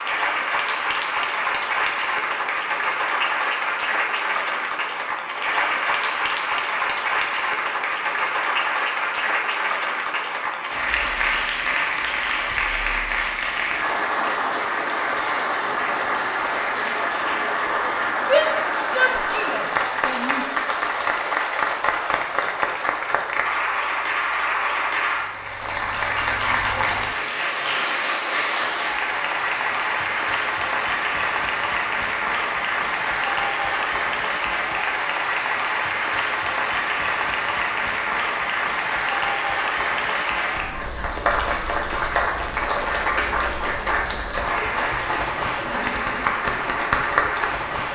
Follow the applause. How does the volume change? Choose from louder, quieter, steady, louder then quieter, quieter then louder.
steady.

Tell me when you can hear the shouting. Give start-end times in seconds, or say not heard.
18.2-20.4.